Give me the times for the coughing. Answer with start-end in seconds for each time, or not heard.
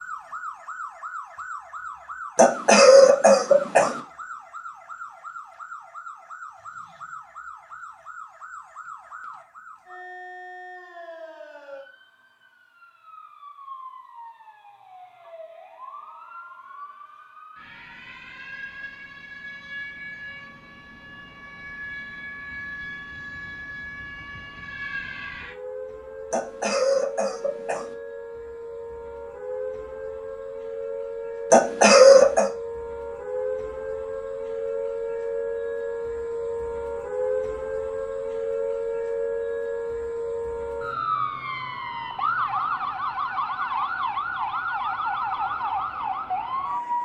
2.4-4.0, 26.3-27.9, 31.5-32.5.